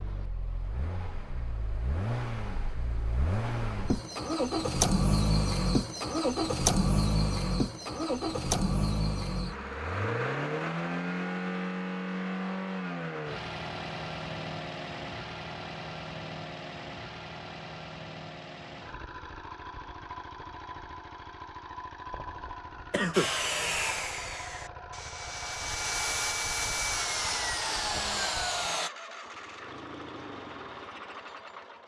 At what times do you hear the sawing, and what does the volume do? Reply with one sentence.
The sawing can be heard from 23.1 to 28.9 s, getting quieter then louder.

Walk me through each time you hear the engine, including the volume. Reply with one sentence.
The engine can be heard from 0.0 to 31.8 s, getting quieter.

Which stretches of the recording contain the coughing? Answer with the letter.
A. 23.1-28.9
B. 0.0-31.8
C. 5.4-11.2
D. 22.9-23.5
D.